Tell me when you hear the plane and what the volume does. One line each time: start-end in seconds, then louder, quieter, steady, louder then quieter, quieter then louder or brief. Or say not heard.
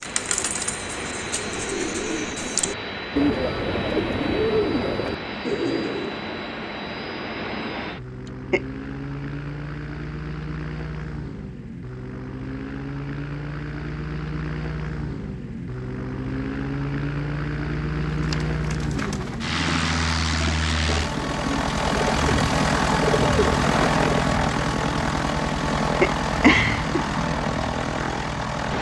0.0-28.7 louder.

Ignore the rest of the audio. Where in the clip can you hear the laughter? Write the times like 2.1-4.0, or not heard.
8.2-8.7, 26.0-27.1.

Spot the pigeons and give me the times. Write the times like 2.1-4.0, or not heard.
0.0-6.2, 18.1-24.3.